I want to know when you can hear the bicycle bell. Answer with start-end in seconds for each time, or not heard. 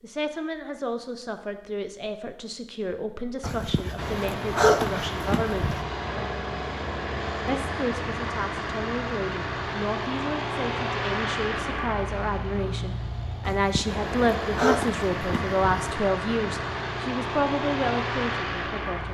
not heard.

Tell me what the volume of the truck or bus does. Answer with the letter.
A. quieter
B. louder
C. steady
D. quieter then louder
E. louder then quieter
C.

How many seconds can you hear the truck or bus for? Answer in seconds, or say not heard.
15 s.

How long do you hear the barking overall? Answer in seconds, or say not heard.
5 s.